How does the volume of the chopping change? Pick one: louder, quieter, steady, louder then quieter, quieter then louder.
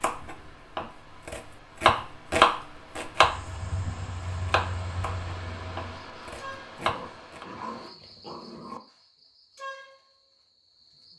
louder then quieter.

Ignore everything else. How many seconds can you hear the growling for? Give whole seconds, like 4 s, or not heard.
2 s.